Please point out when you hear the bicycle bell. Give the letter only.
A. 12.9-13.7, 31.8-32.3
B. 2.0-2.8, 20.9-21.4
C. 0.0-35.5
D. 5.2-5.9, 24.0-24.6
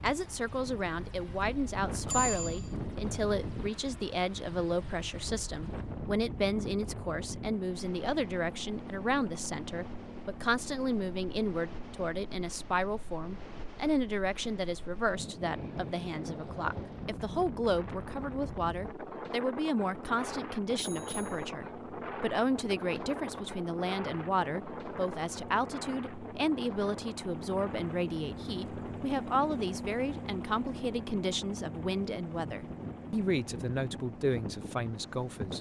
B.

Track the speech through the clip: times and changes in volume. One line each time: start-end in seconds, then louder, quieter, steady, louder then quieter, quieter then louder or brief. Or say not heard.
0.0-35.5 steady.